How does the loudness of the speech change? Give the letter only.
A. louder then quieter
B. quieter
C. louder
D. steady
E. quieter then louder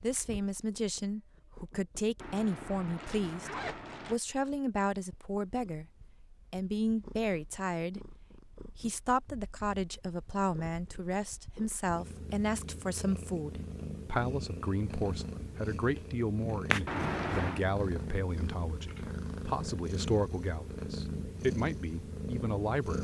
D.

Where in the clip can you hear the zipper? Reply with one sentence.
You can hear the zipper from 2.2 to 4.2 s and from 16.9 to 17.6 s.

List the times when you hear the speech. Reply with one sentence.
You can hear the speech from 0.0 to 5.8 s and from 6.5 to 22.9 s.